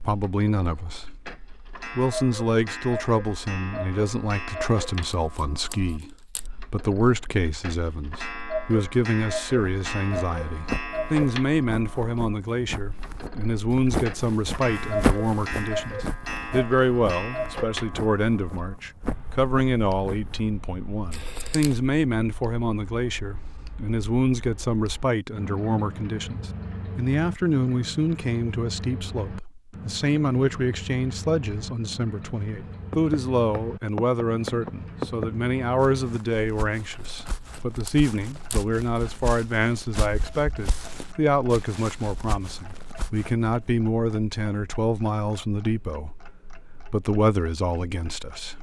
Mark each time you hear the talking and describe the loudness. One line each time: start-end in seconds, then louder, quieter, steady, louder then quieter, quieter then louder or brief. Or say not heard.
0.0-1.1 brief
1.9-48.5 steady.